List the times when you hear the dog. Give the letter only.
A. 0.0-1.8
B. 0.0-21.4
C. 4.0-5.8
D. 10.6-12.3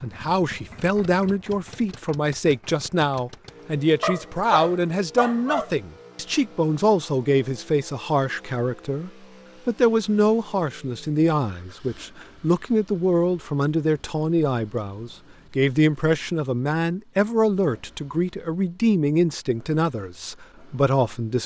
C.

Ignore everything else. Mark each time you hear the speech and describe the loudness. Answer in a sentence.
The speech can be heard from 0.0 to 21.4 s, at a steady volume.